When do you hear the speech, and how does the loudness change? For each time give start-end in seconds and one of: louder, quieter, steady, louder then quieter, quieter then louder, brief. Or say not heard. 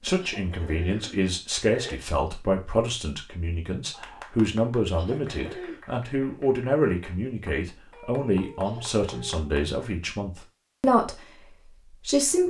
0.0-12.4 steady.